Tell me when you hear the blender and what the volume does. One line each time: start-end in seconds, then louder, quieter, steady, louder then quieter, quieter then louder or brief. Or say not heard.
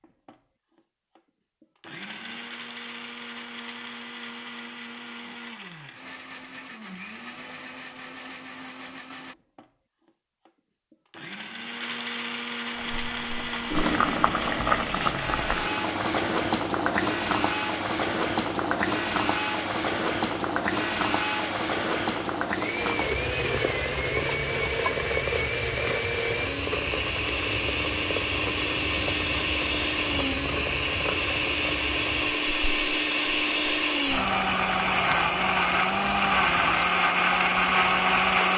0.0-38.5 louder.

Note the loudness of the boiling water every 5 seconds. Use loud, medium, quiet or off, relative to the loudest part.
off, off, loud, loud, loud, medium, medium, medium.